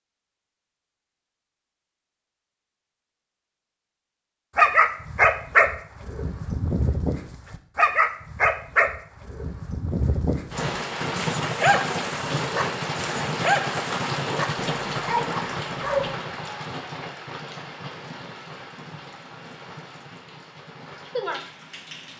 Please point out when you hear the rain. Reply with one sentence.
You can hear the rain from 10.5 to 22.1 s.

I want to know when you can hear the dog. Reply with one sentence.
You can hear the dog from 4.5 to 16.1 s.